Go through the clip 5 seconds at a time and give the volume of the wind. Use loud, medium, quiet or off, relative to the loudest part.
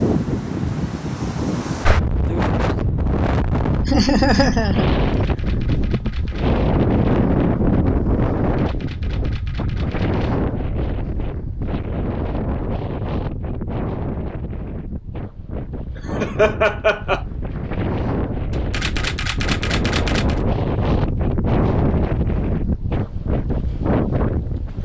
loud, loud, medium, medium, loud.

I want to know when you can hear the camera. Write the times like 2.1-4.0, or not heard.
5.0-6.5, 8.3-10.3, 18.5-20.4.